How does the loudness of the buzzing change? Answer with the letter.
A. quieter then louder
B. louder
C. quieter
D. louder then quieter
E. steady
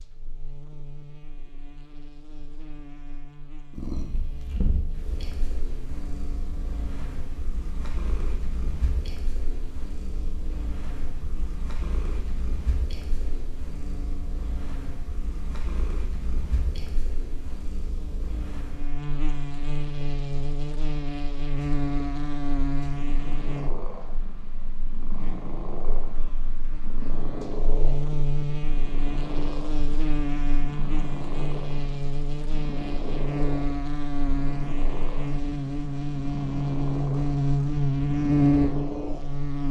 B.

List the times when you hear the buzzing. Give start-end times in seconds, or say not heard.
0.0-39.6.